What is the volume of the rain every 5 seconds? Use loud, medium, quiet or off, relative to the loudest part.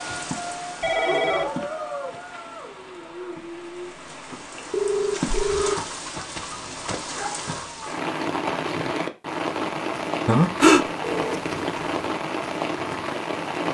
medium, loud, loud.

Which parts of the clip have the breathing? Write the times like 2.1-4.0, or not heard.
0.9-2.1, 5.2-5.8, 10.2-10.8.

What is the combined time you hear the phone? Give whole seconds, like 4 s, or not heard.
3 s.